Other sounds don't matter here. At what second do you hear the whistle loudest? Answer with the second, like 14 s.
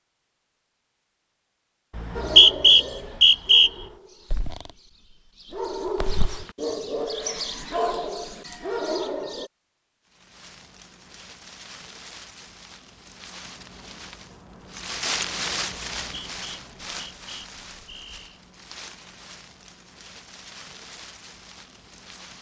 3 s.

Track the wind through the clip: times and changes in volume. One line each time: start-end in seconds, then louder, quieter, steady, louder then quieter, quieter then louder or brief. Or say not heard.
10.1-22.3 louder then quieter.